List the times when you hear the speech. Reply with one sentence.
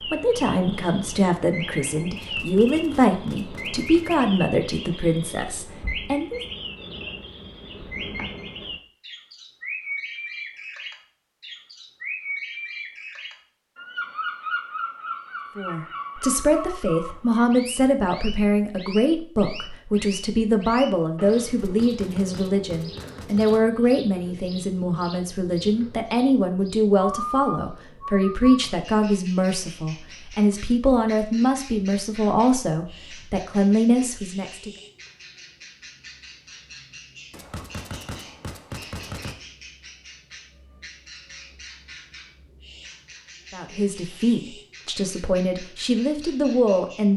You can hear the speech from 0.0 to 6.4 s, from 15.6 to 34.7 s and from 43.5 to 47.1 s.